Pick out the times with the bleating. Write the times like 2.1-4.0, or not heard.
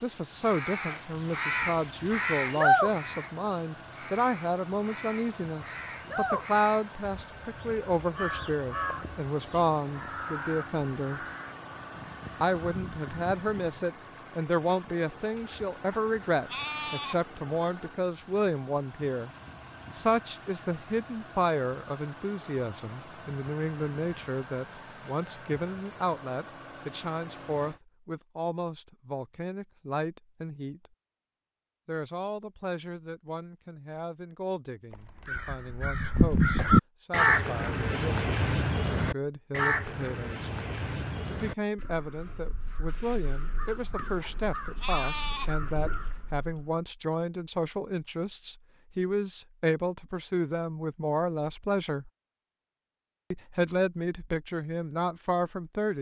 15.3-17.2, 43.6-45.5.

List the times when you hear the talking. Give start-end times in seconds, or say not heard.
0.0-11.2, 12.4-19.3, 19.9-30.9, 31.9-40.5, 41.2-52.1, 53.3-55.9.